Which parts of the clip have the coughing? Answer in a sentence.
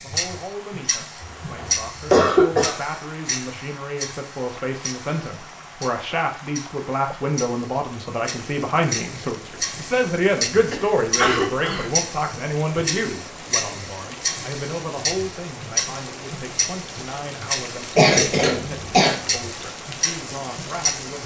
You can hear the coughing from 1.2 to 2.8 s, from 10.7 to 11.8 s and from 17.9 to 19.1 s.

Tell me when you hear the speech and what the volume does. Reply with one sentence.
You can hear the speech from 0.0 to 21.2 s, getting louder then quieter.